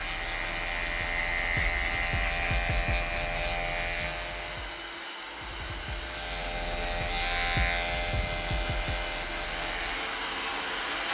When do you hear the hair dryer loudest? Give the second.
11 s.